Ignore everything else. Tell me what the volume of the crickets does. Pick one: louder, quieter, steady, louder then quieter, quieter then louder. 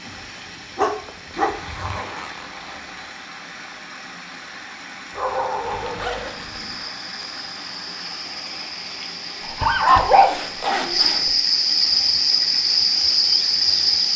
louder.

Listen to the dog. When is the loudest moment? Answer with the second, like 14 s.
10 s.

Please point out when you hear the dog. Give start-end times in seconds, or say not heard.
0.8-1.9, 5.2-6.6, 9.4-11.3.